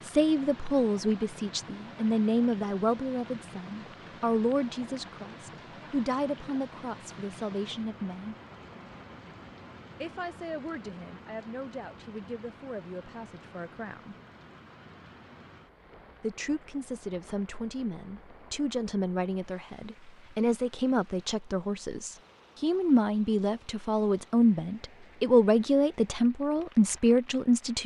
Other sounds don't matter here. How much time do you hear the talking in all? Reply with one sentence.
You can hear the talking for 24 seconds altogether.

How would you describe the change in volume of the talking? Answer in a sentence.
The loudness of the talking goes down, then up.